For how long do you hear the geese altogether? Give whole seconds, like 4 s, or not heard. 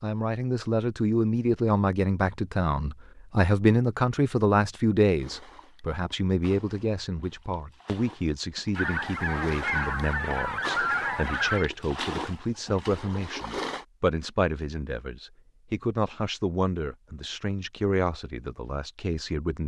3 s.